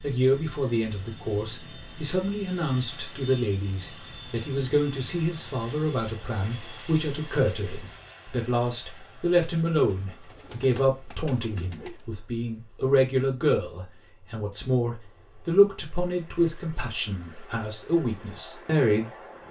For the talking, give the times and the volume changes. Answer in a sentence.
The talking can be heard from 0.0 to 19.4 s, at a steady volume.